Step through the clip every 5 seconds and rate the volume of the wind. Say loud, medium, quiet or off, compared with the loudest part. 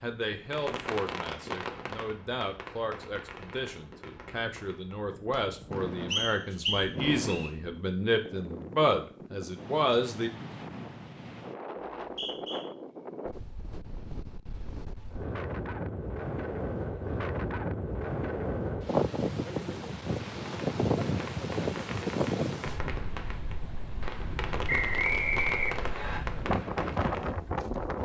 quiet, quiet, medium, loud, loud, loud.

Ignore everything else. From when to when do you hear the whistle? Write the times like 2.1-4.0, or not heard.
6.1-7.5, 11.9-12.7, 24.6-26.2.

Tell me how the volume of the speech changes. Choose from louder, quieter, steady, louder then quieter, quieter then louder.
louder.